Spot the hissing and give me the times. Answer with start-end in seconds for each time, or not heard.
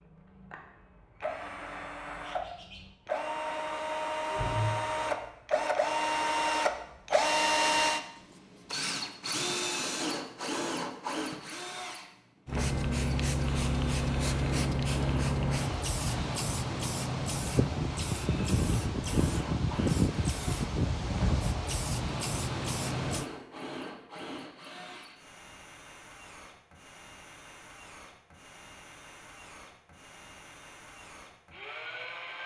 12.4-23.2.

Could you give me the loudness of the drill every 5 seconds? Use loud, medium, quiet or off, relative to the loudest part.
medium, loud, medium, quiet, quiet, quiet, quiet.